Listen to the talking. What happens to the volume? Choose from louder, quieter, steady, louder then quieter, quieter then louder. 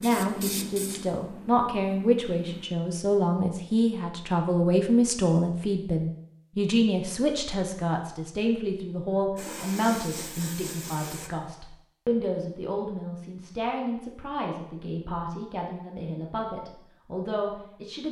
quieter.